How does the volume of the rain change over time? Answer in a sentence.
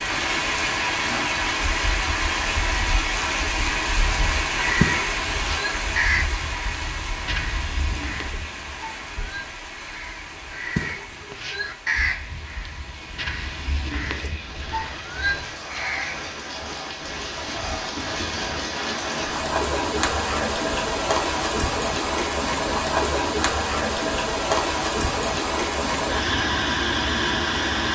The loudness of the rain goes down, then up.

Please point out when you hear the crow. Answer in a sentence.
You can hear the crow from 4.6 to 16.5 s.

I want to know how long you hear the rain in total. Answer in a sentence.
You can hear the rain for 28 seconds altogether.